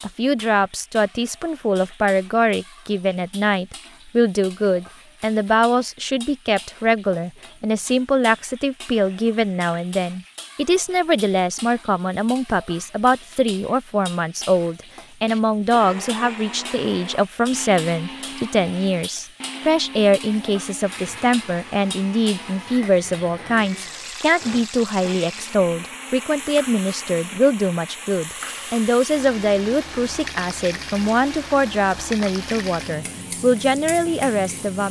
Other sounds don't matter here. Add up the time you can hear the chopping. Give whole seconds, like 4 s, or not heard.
not heard.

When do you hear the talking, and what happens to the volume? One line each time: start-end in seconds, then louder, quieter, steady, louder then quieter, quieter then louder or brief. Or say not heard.
0.0-34.8 steady.